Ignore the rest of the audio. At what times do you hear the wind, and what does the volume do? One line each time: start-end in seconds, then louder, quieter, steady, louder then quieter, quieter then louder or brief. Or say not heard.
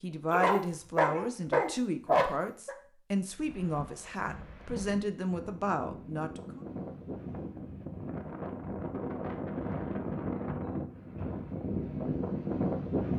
3.4-13.1 louder.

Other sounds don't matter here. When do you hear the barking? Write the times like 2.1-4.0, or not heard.
0.3-2.8.